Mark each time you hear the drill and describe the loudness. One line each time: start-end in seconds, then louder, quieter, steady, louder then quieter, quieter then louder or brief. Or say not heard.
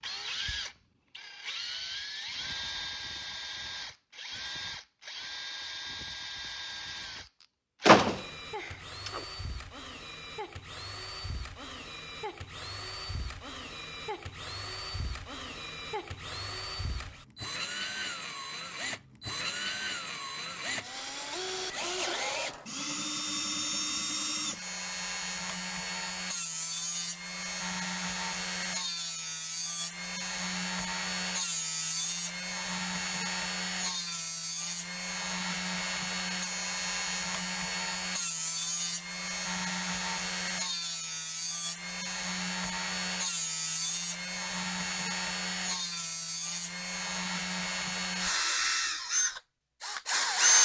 0.0-50.6 louder.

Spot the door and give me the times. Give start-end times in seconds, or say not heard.
7.8-9.2.